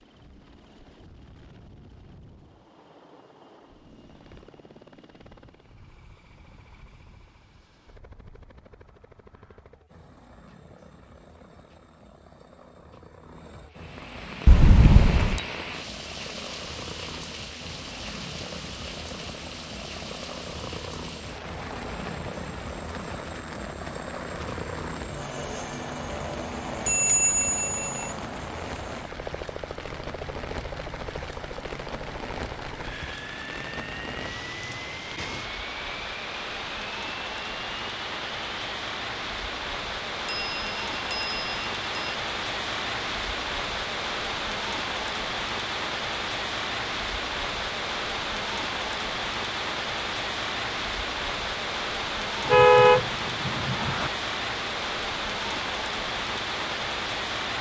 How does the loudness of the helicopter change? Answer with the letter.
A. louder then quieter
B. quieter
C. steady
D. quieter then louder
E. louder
E.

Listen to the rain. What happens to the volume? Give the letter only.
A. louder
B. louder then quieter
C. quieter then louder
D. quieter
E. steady
A.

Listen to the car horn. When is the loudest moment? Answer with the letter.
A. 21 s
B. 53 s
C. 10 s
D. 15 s
B.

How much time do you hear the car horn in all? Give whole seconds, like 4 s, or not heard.
2 s.